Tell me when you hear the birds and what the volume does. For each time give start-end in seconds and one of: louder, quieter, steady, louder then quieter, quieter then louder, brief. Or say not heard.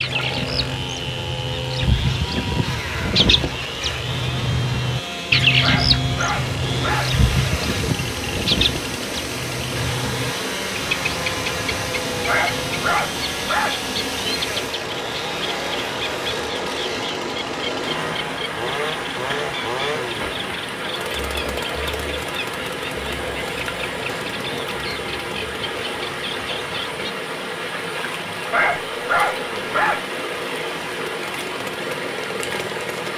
0.0-27.1 quieter.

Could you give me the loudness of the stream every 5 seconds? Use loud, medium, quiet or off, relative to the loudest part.
medium, loud, loud, loud, loud, loud, loud.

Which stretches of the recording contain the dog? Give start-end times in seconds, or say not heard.
5.6-7.1, 12.2-13.8, 28.5-30.0.